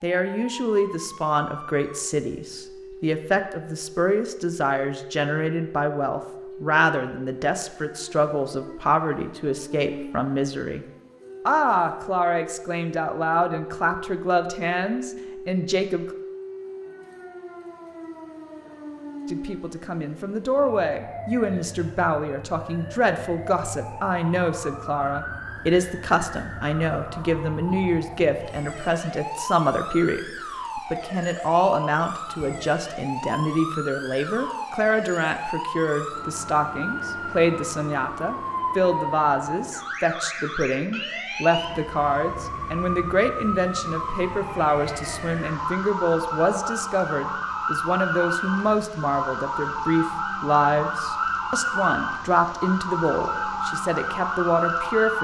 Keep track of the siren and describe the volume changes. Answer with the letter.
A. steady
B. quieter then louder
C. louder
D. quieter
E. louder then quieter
C.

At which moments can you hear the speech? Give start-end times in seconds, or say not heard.
0.0-10.8, 11.4-16.1, 19.3-55.1.